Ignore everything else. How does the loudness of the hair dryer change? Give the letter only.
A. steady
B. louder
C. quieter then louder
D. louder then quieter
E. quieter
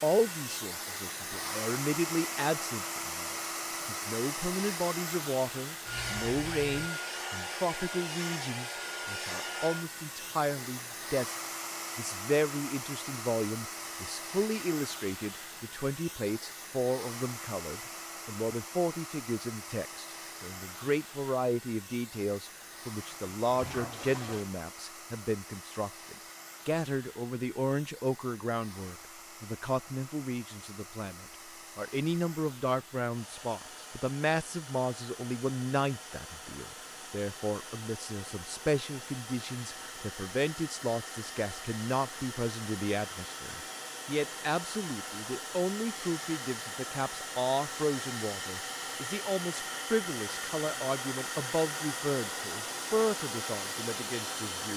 C.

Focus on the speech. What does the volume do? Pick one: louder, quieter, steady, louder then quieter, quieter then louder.
steady.